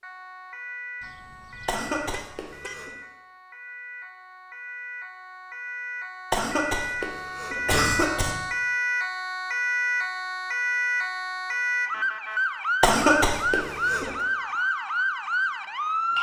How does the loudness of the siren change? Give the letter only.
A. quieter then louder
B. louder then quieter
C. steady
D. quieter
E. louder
E.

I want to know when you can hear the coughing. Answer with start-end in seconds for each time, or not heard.
1.6-3.0, 6.3-8.3, 12.8-14.1.